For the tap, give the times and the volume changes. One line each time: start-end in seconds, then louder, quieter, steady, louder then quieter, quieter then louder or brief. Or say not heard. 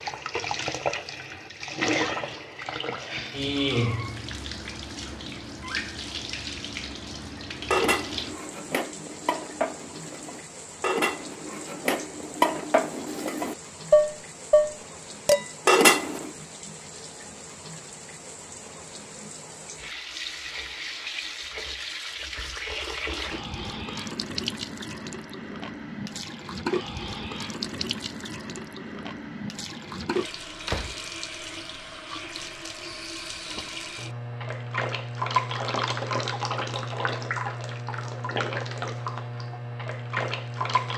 0.0-40.9 quieter then louder.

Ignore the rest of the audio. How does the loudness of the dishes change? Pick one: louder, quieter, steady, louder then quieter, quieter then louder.
louder.